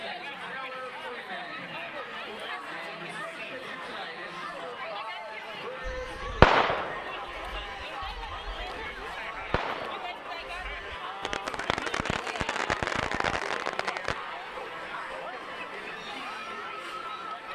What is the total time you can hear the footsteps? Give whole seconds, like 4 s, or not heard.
not heard.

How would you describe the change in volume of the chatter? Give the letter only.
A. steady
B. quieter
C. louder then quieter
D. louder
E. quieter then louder
A.